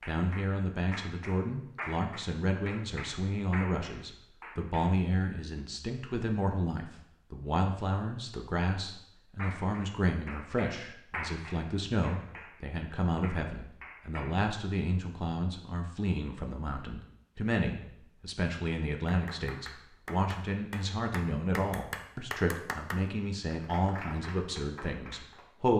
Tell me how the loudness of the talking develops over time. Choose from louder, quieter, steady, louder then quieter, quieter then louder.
steady.